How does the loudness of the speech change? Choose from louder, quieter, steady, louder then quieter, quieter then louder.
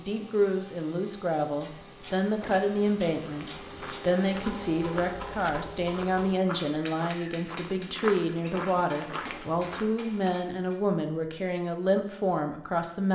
steady.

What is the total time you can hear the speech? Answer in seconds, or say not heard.
13 s.